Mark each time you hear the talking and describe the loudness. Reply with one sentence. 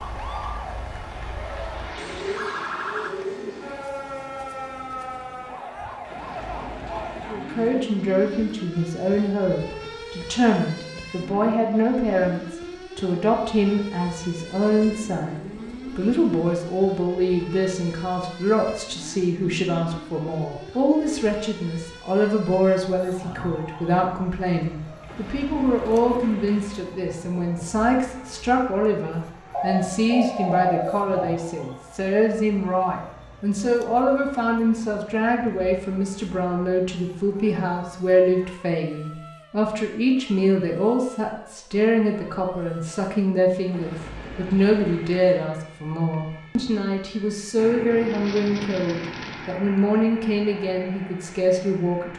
The talking can be heard from 7.3 to 52.1 s, at a steady volume.